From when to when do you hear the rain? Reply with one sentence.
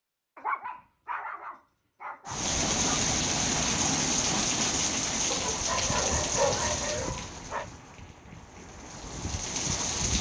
You can hear the rain from 2.2 to 10.1 s.